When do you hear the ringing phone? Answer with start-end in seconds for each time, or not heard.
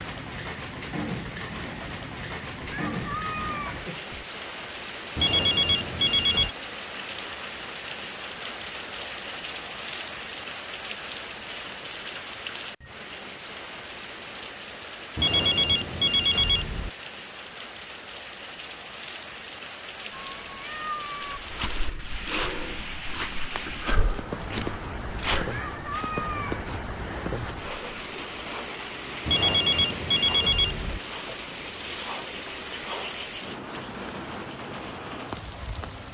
5.2-6.5, 15.2-16.9, 29.2-31.0.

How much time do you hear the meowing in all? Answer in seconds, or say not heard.
4 s.